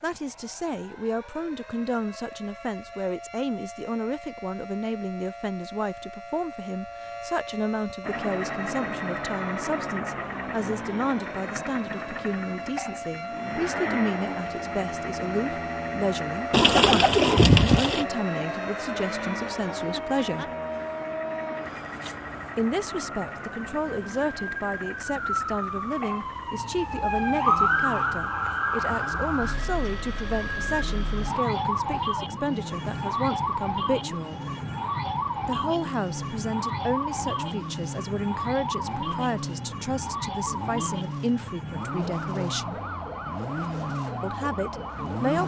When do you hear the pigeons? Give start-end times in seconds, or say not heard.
16.5-18.1.